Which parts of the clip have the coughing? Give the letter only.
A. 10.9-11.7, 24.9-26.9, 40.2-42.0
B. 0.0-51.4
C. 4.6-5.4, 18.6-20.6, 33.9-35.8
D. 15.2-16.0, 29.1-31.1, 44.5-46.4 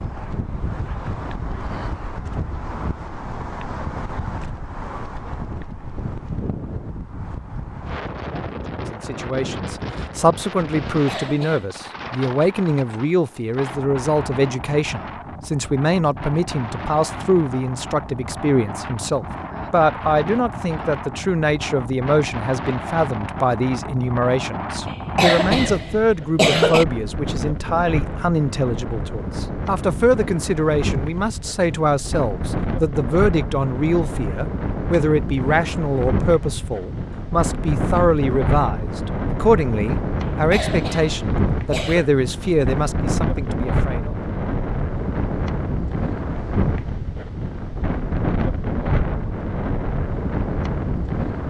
A.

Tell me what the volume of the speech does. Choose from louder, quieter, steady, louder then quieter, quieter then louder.
steady.